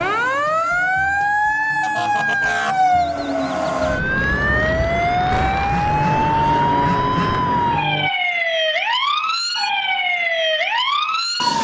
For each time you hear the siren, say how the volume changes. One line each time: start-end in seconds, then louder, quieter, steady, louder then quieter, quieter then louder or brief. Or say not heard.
0.0-11.5 steady.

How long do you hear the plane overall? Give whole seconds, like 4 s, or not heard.
4 s.